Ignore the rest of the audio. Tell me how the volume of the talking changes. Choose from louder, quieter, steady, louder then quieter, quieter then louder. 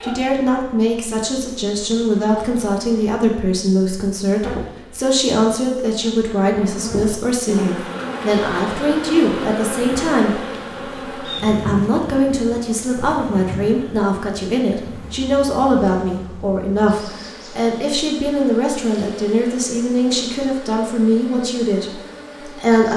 steady.